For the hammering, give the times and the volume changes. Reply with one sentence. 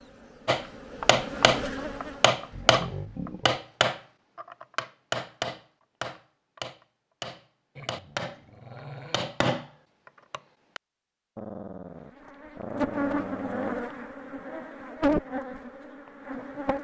You can hear the hammering from 0.5 to 9.7 s, getting quieter; and briefly from 10.3 to 10.8 s.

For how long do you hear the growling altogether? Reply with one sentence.
You can hear the growling for 5 seconds altogether.